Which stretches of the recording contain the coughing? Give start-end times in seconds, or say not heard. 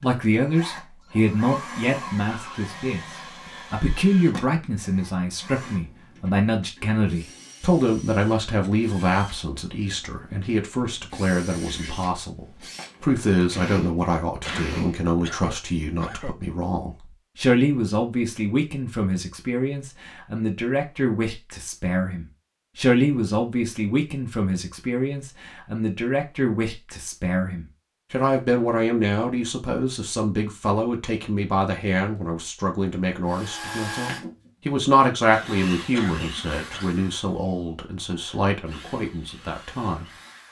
14.4-16.4, 35.9-36.9.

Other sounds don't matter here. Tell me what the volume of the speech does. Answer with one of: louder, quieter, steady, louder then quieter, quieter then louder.
steady.